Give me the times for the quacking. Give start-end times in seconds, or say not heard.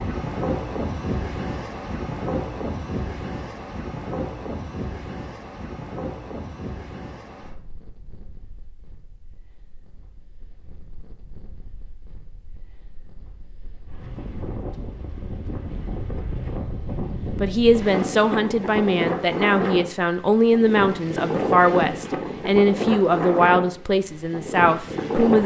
not heard.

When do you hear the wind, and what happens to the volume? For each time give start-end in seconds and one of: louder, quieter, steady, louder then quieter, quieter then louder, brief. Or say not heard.
0.0-25.4 quieter then louder.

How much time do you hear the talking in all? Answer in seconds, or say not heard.
8 s.